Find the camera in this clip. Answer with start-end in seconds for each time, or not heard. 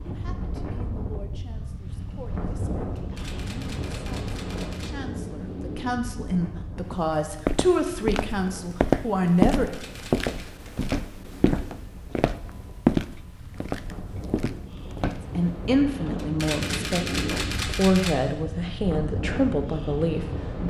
3.0-5.0, 9.5-10.6, 16.1-18.1.